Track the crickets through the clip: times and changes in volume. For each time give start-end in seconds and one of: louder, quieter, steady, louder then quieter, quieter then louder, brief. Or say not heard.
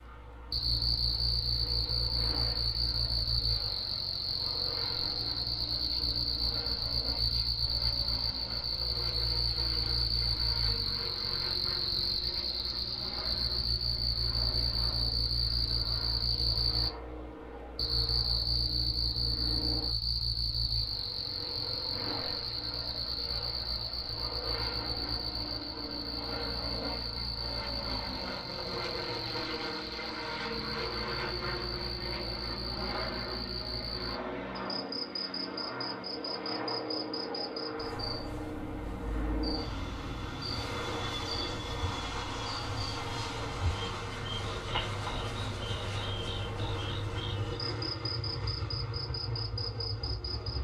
0.0-50.5 quieter.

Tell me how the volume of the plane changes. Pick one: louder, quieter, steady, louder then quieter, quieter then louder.
louder.